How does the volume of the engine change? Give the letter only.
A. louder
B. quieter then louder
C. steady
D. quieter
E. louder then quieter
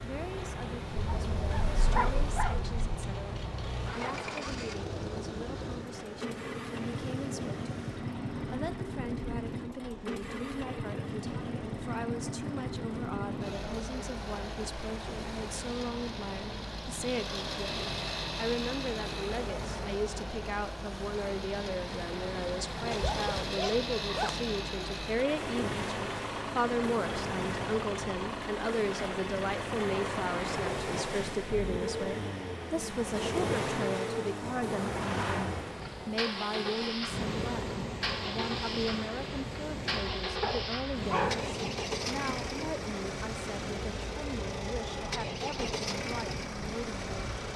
C.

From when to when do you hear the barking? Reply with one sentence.
You can hear the barking from 0.9 to 3.0 s, from 22.9 to 24.4 s and from 40.4 to 41.5 s.